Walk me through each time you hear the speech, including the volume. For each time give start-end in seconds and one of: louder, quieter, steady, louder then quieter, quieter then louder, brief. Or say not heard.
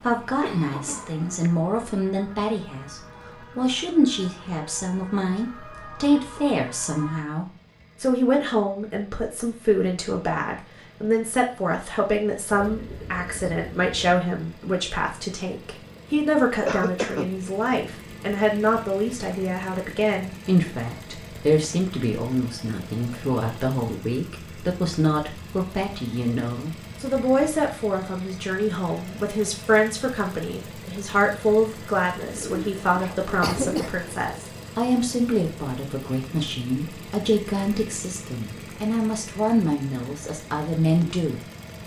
0.0-41.4 steady.